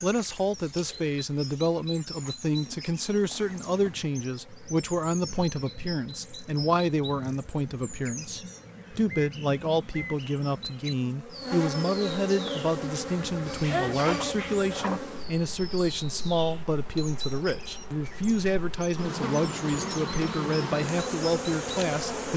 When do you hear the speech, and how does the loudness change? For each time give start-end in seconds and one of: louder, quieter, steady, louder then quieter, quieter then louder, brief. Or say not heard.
0.0-22.3 steady.